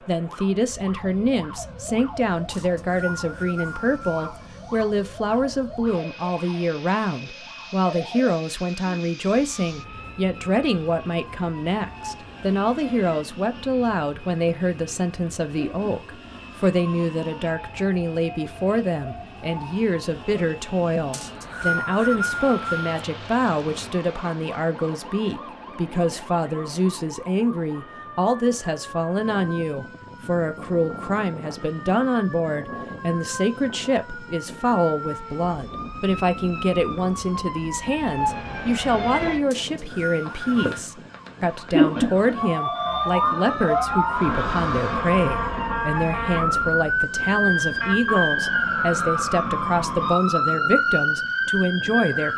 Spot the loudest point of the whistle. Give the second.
22 s.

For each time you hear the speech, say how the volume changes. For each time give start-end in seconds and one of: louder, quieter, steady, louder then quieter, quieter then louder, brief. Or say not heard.
0.1-52.3 steady.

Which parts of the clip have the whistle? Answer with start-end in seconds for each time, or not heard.
2.5-4.3, 21.1-23.0, 39.5-40.9.